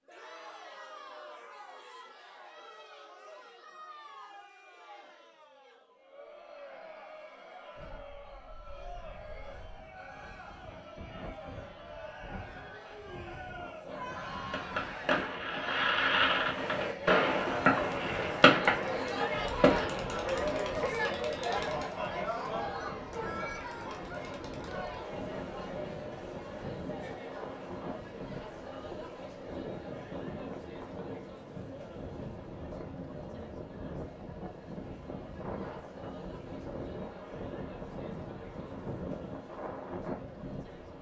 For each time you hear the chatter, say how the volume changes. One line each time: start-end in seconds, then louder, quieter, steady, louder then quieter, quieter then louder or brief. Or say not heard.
0.0-40.9 louder then quieter.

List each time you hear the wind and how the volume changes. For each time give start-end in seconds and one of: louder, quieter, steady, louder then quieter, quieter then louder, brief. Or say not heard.
7.8-40.9 louder.